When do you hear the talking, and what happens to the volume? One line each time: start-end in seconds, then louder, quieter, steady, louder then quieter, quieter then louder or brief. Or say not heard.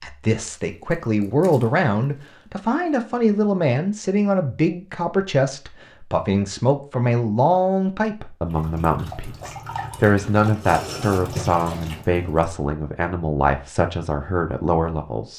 0.0-15.3 steady.